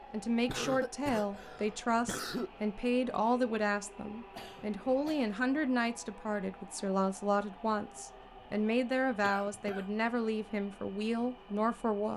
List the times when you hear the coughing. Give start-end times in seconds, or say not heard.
0.5-2.5, 4.3-5.3, 9.2-9.9.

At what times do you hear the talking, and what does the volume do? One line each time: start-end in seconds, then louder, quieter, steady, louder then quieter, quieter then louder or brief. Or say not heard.
0.1-12.1 steady.